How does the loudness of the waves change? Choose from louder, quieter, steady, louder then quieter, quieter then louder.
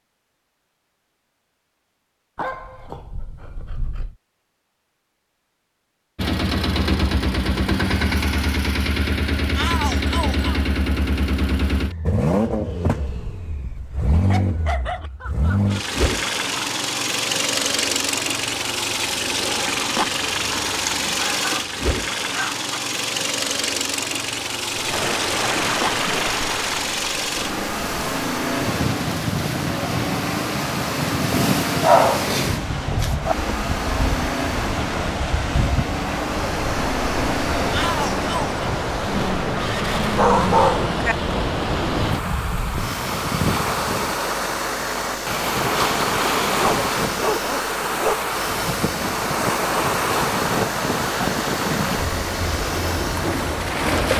steady.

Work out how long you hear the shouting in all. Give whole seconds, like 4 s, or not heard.
2 s.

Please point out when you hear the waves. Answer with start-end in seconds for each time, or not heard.
24.7-54.1.